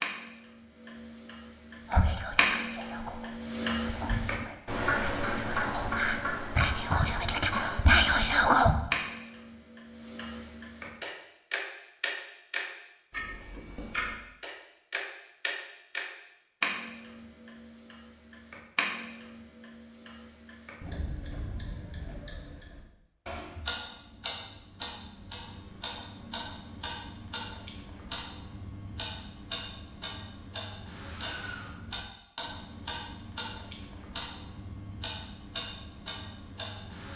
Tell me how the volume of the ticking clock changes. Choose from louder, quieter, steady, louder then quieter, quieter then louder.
quieter.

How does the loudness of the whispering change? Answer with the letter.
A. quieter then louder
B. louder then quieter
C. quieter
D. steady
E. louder
E.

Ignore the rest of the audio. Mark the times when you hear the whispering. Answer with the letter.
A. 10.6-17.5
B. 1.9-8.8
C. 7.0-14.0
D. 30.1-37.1
B.